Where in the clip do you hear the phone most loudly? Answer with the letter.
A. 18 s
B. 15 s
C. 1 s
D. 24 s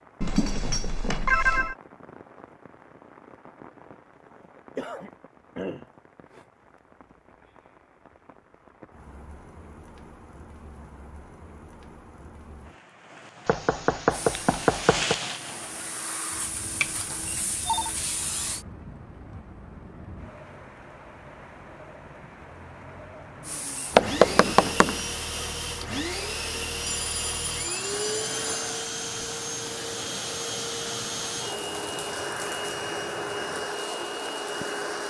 C.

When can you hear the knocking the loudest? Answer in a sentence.
The volume of the knocking peaks at 24 seconds.